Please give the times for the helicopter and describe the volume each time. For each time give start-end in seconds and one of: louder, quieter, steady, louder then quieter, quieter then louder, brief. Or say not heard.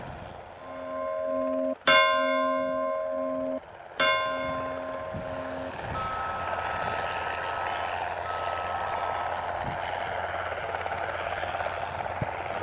0.0-12.5 louder.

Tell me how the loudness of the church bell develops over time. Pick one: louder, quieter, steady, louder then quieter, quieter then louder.
quieter.